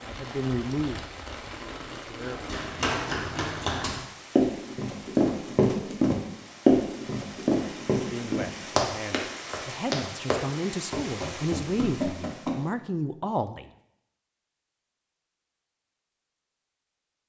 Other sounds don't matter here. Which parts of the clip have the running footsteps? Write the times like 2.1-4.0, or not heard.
2.2-12.6.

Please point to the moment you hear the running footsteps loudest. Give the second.
7 s.